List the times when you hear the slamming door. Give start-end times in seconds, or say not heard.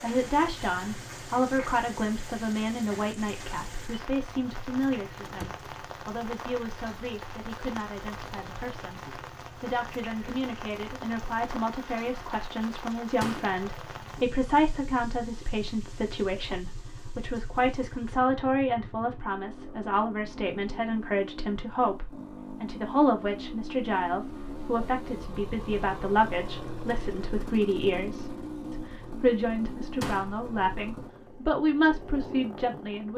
5.2-5.7, 13.2-13.6, 30.0-30.4.